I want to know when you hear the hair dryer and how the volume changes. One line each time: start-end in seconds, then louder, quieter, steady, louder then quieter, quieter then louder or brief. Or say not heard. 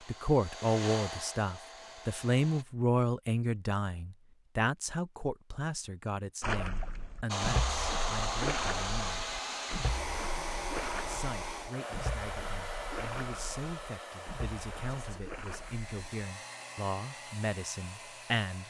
0.0-2.6 brief
7.2-18.6 quieter.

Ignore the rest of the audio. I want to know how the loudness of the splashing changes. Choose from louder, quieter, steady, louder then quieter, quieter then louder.
quieter.